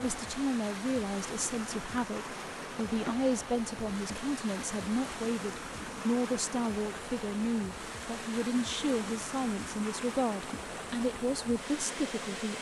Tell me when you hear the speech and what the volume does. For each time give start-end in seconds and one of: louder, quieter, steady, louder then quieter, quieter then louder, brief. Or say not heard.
0.0-12.5 steady.